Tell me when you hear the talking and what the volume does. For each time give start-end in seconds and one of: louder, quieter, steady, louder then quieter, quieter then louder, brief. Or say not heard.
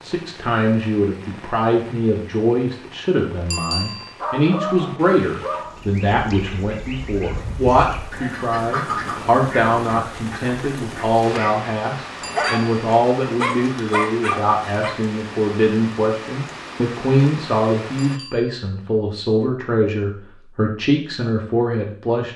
0.0-22.3 steady.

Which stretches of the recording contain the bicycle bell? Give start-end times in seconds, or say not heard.
3.5-4.2, 12.2-12.6, 17.9-18.6.